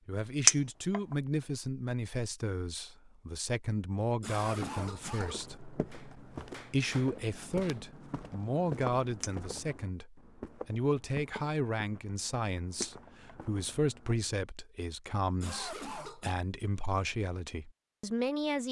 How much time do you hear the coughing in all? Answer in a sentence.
The coughing can be heard for 2 seconds in total.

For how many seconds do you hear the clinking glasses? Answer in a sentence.
The clinking glasses can be heard for 2 seconds in total.